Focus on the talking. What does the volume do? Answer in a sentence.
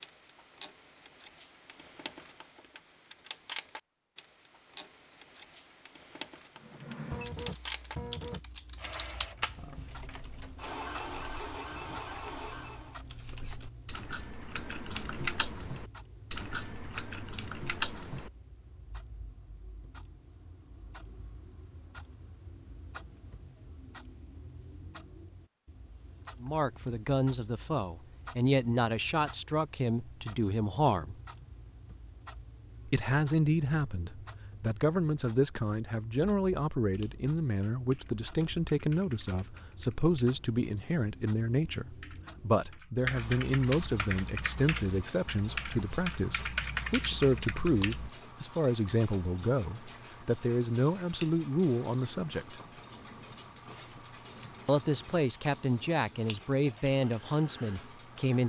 The loudness of the talking stays about the same.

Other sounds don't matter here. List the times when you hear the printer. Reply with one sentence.
You can hear the printer from 6.5 to 13.0 s.